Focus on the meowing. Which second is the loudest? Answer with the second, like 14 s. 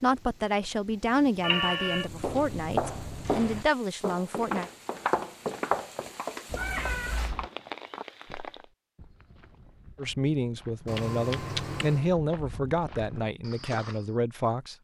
2 s.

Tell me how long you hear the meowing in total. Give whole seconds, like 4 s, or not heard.
3 s.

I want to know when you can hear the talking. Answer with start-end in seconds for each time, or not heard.
0.0-4.7, 9.9-14.7.